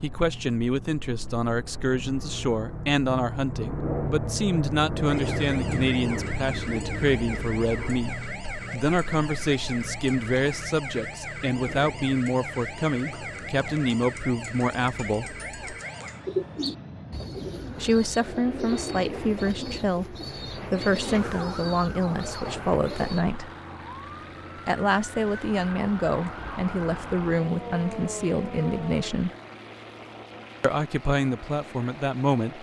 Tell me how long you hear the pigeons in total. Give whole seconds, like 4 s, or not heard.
7 s.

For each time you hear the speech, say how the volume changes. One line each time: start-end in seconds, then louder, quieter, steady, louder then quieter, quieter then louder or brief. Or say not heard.
0.0-15.3 steady
17.8-23.5 steady
24.6-29.3 steady
30.6-32.5 brief.